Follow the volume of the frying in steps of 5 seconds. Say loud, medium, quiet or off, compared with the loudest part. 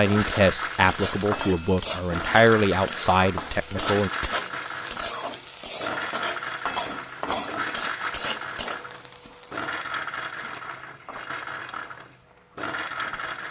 loud, loud, quiet.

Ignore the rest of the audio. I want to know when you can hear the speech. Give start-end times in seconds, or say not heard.
0.0-4.1.